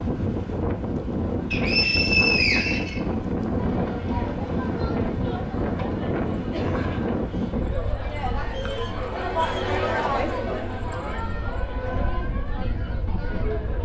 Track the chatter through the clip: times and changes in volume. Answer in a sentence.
You can hear the chatter from 3.5 to 13.8 s, getting louder then quieter.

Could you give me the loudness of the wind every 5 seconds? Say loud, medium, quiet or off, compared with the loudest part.
loud, loud, medium.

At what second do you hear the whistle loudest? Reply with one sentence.
The volume of the whistle peaks at 2 seconds.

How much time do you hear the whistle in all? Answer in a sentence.
The whistle can be heard for 3 seconds in total.